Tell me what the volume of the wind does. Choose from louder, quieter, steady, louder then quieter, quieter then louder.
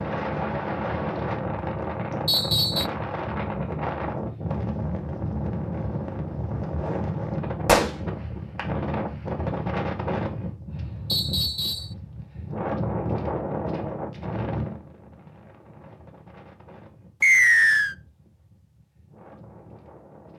quieter.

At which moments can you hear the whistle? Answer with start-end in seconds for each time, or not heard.
2.2-2.9, 11.1-11.9, 17.2-17.9.